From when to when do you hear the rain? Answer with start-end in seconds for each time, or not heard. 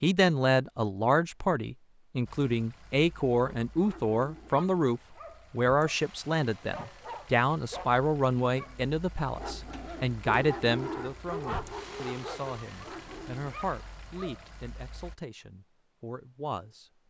not heard.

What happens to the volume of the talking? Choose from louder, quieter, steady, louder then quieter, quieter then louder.
quieter.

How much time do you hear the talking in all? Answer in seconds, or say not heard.
17 s.